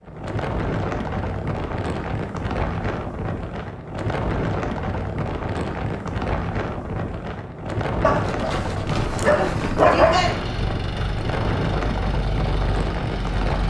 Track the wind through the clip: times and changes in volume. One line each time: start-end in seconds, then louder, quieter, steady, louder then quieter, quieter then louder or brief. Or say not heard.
0.0-13.6 steady.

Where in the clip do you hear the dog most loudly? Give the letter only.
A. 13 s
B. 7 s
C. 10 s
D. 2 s
C.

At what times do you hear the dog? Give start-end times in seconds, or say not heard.
8.0-10.4.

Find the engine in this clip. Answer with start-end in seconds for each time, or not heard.
10.1-13.6.